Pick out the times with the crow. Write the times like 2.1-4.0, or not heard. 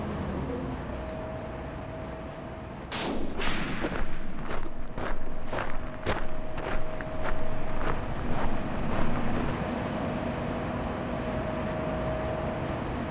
not heard.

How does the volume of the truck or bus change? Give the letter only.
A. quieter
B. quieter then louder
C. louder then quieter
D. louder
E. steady
B.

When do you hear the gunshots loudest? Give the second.
3 s.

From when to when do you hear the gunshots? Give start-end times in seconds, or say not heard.
2.9-4.5.